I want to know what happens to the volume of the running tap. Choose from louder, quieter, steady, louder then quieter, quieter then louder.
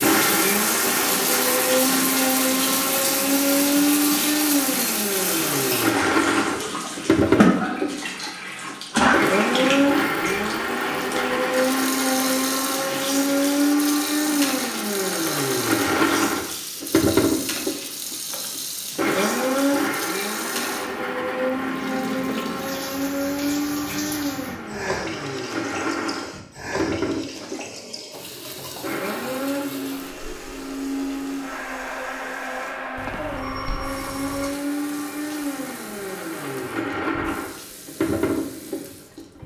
quieter.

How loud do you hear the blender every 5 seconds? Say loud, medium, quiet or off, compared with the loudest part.
loud, loud, loud, loud, medium, medium, medium, medium.